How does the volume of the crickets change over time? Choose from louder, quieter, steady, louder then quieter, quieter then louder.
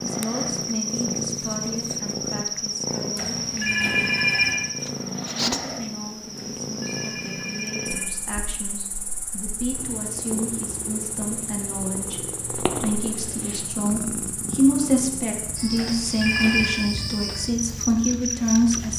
quieter then louder.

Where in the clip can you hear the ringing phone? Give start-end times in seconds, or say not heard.
3.1-4.7, 6.3-8.1, 15.8-16.8.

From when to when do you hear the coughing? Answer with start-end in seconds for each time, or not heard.
not heard.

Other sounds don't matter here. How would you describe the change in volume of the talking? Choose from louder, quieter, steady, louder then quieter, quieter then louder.
louder.